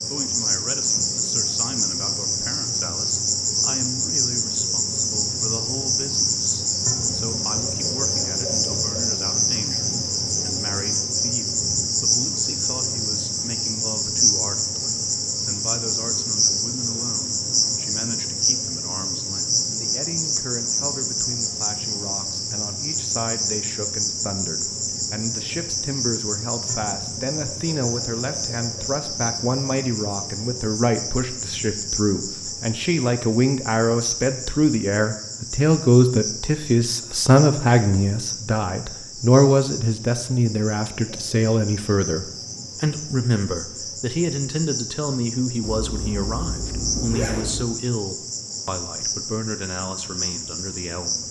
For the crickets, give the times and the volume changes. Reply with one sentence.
You can hear the crickets from 0.0 to 51.2 s, getting quieter.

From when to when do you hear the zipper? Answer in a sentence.
You can hear the zipper from 45.6 to 47.6 s.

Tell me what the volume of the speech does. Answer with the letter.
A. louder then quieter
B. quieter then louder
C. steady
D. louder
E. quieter
A.